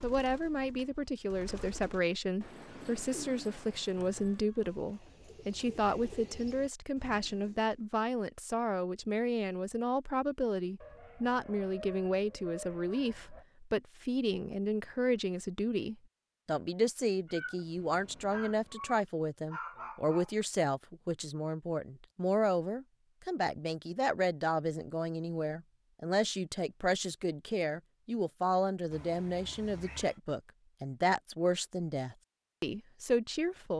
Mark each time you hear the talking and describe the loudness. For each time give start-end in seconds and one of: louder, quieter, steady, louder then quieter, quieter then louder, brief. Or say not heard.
0.0-33.7 steady.